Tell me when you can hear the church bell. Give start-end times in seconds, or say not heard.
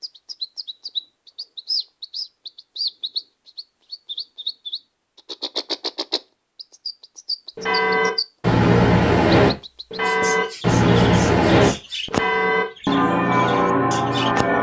7.5-14.5.